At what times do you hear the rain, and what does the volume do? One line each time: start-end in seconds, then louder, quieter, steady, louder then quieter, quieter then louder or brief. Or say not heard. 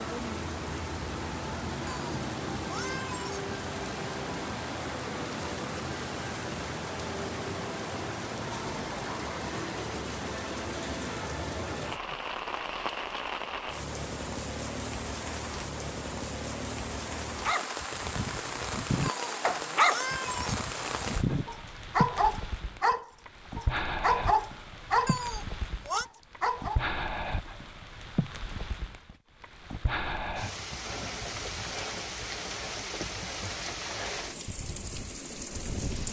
0.0-36.0 steady.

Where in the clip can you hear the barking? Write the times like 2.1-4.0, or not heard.
17.4-25.1, 25.9-26.8.